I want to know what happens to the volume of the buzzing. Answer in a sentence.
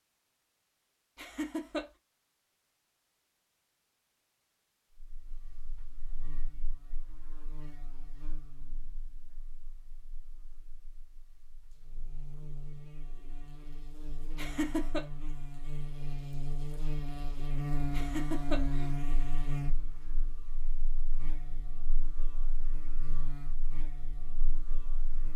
The loudness of the buzzing goes up, then down.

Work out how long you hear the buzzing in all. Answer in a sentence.
You can hear the buzzing for 20 seconds altogether.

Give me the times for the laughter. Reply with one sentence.
The laughter can be heard from 1.1 to 1.9 s, from 14.3 to 15.1 s and from 17.9 to 18.9 s.